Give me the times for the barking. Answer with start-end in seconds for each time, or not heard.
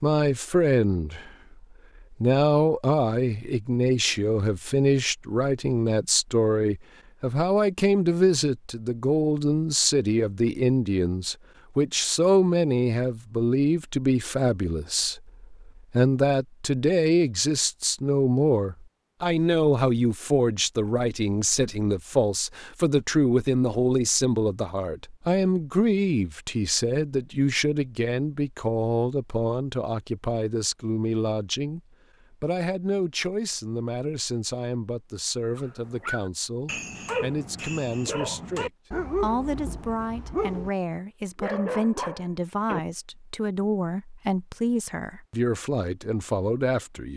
35.5-40.7, 41.4-42.8.